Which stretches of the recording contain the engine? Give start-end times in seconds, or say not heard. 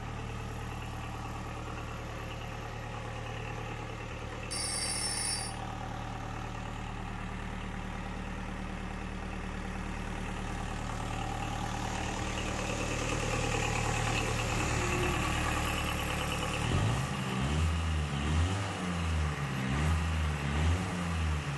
0.0-21.5.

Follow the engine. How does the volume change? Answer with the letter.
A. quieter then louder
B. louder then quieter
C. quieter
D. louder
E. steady
D.